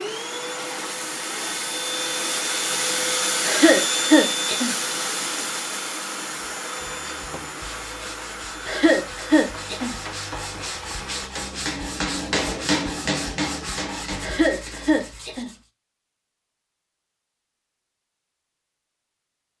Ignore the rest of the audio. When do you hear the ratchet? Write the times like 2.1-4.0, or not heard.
not heard.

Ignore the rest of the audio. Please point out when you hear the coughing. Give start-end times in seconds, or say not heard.
3.5-4.8, 8.7-9.9, 14.2-15.5.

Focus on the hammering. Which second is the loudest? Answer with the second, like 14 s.
13 s.